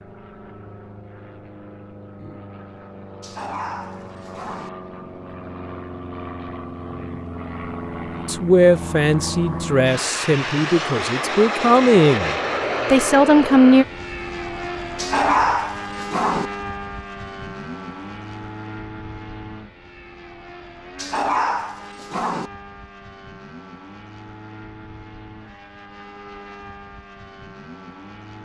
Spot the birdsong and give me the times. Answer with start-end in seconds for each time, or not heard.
not heard.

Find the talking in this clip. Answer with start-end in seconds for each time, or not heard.
8.2-13.8.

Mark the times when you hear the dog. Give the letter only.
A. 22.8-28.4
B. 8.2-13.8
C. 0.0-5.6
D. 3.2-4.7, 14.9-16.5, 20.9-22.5
D.